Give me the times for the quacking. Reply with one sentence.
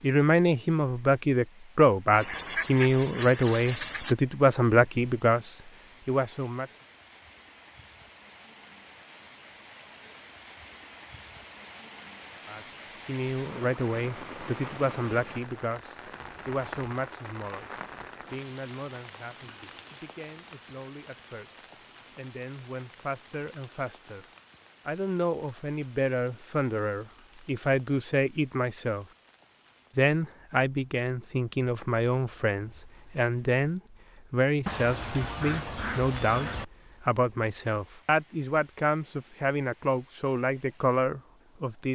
You can hear the quacking from 2.1 to 4.2 s and from 34.6 to 36.6 s.